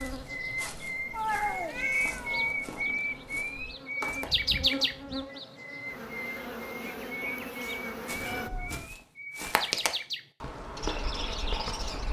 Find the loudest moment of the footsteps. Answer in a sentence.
The volume of the footsteps peaks at 10 seconds.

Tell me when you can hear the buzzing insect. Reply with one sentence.
You can hear the buzzing insect from 0.0 to 8.5 s.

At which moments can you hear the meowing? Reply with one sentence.
The meowing can be heard from 1.1 to 2.5 s, from 4.2 to 5.2 s and from 8.2 to 9.0 s.